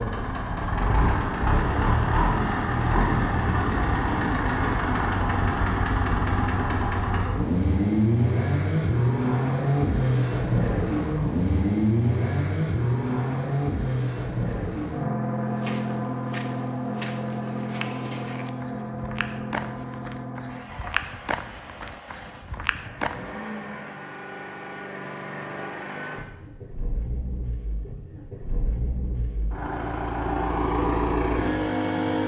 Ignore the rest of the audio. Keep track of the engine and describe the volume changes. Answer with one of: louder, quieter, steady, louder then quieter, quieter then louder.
quieter then louder.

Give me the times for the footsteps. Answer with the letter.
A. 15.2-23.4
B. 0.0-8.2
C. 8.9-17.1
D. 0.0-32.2
A.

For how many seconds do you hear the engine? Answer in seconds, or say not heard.
32 s.